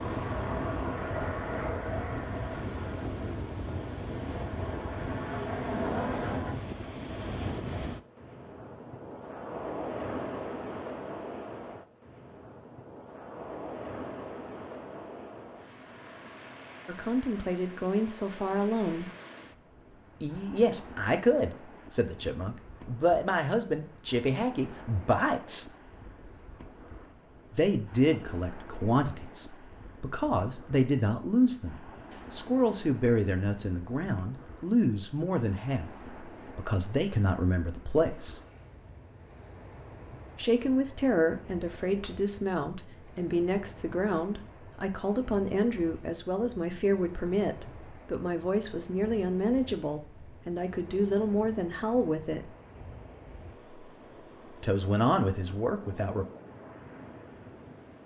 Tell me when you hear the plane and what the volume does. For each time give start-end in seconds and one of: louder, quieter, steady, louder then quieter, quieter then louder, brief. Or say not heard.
0.0-6.5 quieter then louder.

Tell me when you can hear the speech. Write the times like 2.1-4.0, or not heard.
16.9-19.1, 20.2-25.7, 27.5-38.4, 40.4-52.5, 54.6-56.2.